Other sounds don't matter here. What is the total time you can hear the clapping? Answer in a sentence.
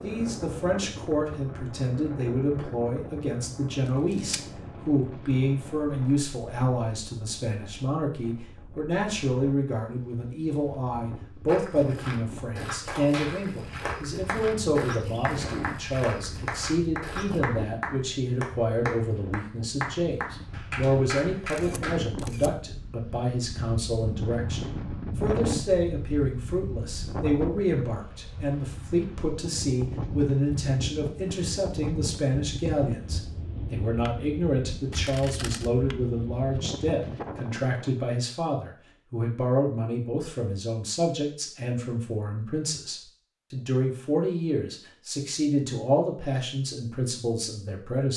The clapping can be heard for 9 seconds in total.